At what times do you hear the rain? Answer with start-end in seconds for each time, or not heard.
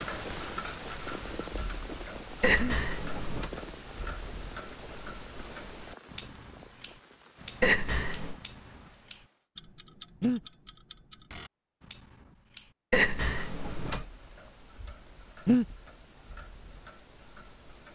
0.0-9.4.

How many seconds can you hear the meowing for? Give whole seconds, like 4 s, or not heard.
3 s.